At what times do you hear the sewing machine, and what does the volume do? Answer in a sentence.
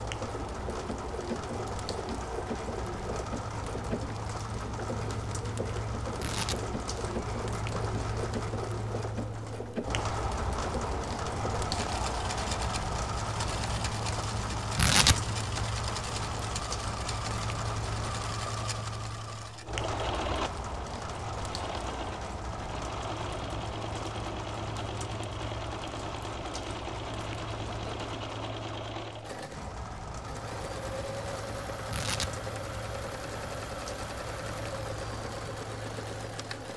The sewing machine can be heard from 0.0 to 36.7 s, at a steady volume.